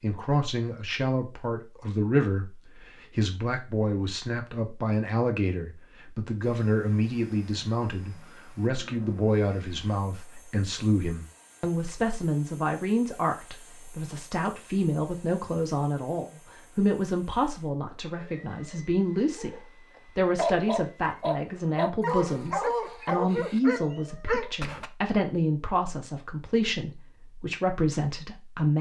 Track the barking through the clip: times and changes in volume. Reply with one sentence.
The barking can be heard from 18.1 to 24.9 s, getting louder.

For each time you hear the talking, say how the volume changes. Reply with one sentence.
You can hear the talking from 0.0 to 28.7 s, at a steady volume.